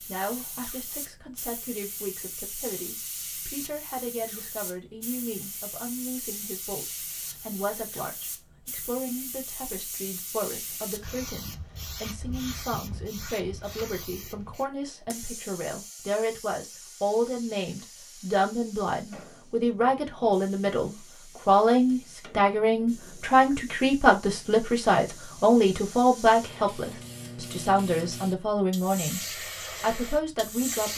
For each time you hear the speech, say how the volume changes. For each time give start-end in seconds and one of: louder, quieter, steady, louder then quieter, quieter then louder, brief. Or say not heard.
0.0-30.9 louder.